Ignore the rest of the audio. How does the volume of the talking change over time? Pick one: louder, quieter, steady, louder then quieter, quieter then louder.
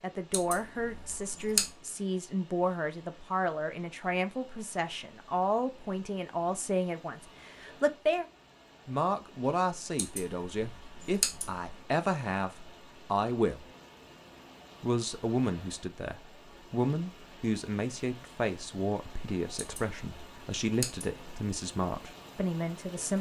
steady.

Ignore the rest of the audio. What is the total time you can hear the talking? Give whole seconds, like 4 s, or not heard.
21 s.